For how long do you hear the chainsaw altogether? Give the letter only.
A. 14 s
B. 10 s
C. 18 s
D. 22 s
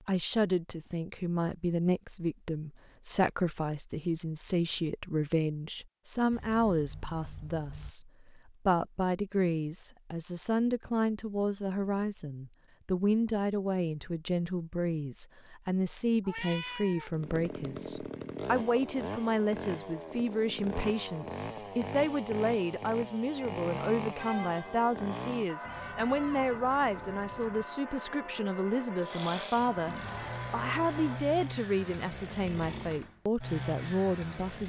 A.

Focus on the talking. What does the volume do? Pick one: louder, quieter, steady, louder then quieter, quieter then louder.
steady.